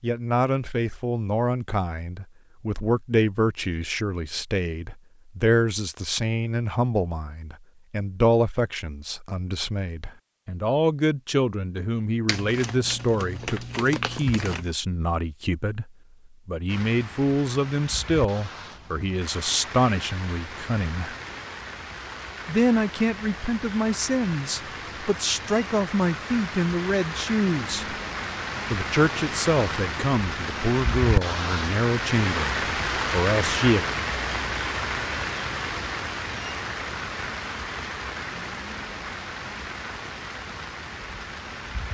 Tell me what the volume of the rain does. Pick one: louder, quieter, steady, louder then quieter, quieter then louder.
louder then quieter.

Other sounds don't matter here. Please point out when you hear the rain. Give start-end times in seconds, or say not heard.
16.6-41.8.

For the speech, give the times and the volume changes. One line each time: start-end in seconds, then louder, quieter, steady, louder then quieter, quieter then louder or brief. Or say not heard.
0.0-21.1 steady
22.4-27.9 steady
28.7-33.9 steady.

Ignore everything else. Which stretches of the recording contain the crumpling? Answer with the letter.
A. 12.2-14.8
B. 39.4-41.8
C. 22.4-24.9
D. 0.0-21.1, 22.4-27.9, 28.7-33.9
A.